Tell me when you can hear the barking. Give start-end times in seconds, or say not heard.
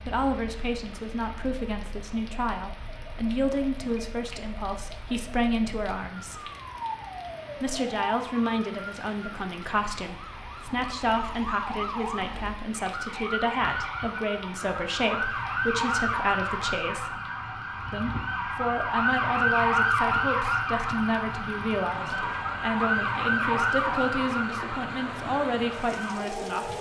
not heard.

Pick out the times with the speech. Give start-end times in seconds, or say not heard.
0.0-6.5, 7.5-17.1, 17.9-26.7.